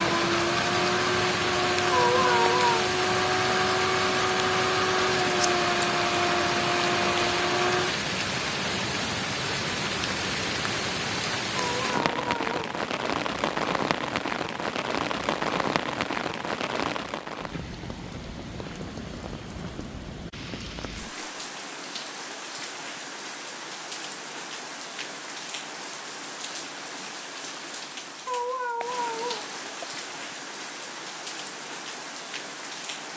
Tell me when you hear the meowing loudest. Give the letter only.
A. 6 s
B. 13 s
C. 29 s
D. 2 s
D.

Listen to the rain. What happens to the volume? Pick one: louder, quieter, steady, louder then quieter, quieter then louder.
quieter.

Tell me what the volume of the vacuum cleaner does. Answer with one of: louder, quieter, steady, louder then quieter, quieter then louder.
steady.